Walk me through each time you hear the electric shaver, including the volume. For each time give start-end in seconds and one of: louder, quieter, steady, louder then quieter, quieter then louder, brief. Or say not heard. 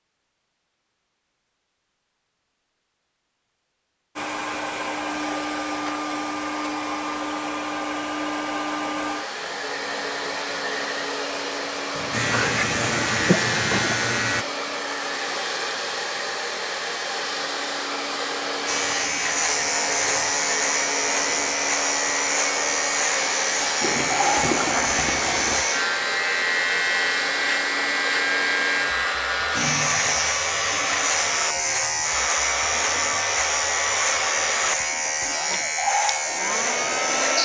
12.1-14.4 brief
18.6-37.4 steady.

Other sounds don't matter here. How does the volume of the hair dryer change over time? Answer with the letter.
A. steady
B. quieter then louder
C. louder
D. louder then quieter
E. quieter
A.